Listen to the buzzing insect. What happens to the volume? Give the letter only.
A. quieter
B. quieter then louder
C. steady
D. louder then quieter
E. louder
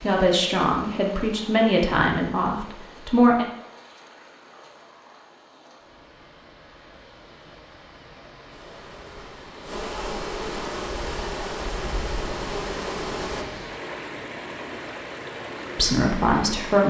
E.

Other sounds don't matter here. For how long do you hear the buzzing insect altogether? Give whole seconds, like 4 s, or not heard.
5 s.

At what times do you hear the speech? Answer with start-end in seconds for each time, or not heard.
0.0-3.5, 15.8-16.8.